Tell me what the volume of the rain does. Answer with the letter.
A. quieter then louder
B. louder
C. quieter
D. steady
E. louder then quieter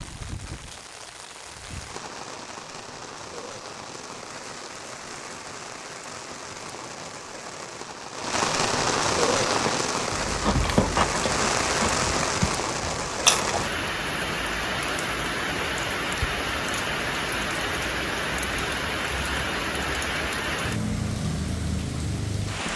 B.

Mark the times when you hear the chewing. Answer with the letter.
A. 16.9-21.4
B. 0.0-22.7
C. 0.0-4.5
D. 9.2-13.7
D.